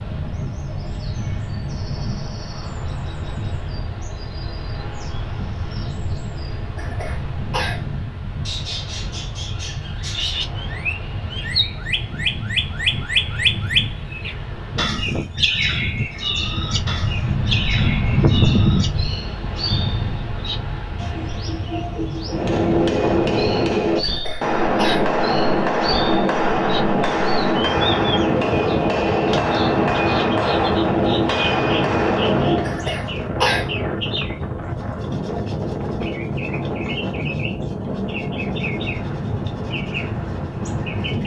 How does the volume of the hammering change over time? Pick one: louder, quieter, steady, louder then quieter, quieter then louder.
steady.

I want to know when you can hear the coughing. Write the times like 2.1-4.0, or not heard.
6.8-7.8, 24.0-25.1, 32.6-33.7.